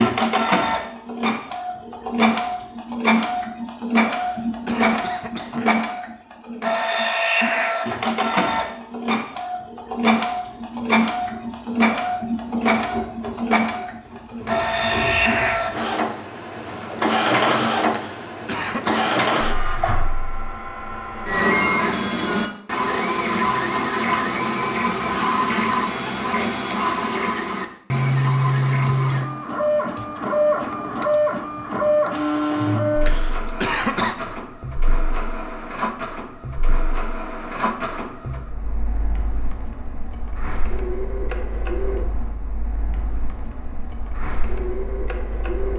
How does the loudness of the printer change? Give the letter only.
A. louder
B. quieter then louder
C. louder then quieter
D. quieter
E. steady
D.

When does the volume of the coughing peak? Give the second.
34 s.